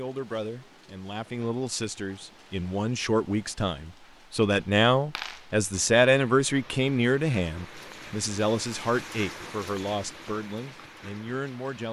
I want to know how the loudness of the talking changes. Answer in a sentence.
The volume of the talking goes up, then down.